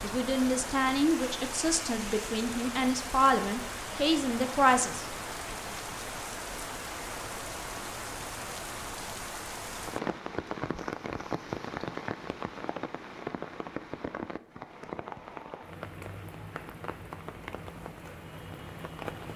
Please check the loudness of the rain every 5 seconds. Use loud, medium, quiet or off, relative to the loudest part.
loud, loud, loud, medium.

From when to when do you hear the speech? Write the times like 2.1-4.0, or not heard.
0.0-5.0.